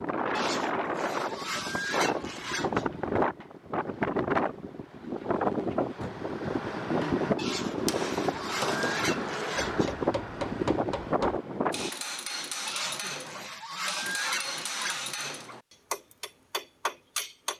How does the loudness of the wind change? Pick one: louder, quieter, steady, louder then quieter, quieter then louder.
steady.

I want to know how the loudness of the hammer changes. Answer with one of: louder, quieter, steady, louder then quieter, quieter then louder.
steady.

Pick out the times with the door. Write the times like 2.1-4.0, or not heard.
6.0-7.3.